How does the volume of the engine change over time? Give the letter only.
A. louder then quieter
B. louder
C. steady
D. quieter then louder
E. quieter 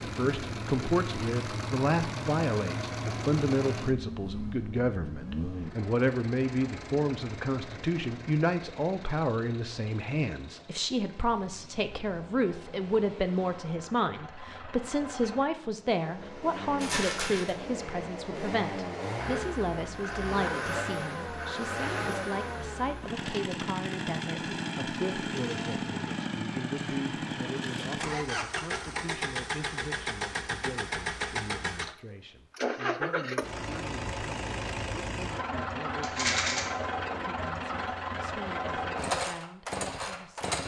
D.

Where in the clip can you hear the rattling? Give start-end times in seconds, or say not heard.
16.8-17.6, 36.0-36.6.